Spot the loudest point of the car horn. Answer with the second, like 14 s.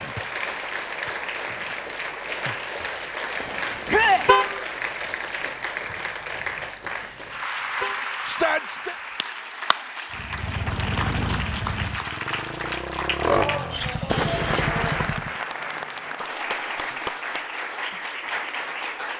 4 s.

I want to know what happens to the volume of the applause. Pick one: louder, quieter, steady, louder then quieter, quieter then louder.
steady.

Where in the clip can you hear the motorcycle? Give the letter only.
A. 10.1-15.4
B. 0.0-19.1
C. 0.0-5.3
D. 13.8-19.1
A.